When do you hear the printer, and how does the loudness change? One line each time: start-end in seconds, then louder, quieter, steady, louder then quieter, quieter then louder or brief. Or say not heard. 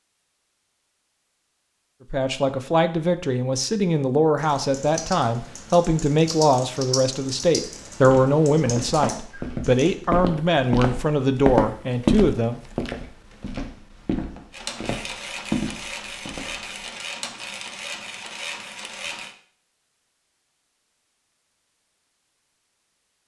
14.5-19.4 steady.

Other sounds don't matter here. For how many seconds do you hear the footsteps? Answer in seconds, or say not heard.
9 s.